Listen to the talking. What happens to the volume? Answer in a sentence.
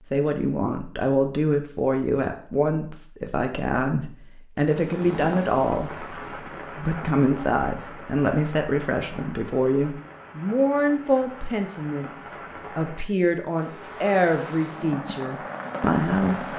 The volume of the talking stays about the same.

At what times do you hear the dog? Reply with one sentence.
You can't hear the dog here.